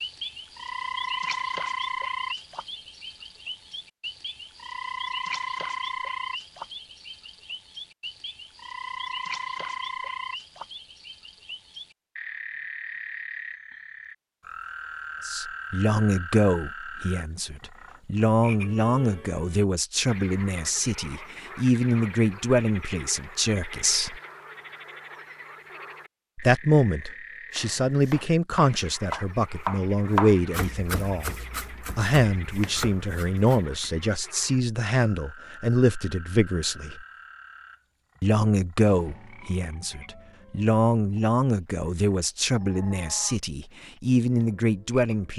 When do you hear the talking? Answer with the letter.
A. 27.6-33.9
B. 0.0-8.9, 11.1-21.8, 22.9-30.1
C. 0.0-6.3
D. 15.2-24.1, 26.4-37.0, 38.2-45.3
D.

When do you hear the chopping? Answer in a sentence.
The chopping can be heard from 27.6 to 33.9 s.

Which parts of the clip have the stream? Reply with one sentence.
The stream can't be heard in this clip.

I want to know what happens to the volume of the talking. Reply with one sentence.
The volume of the talking stays about the same.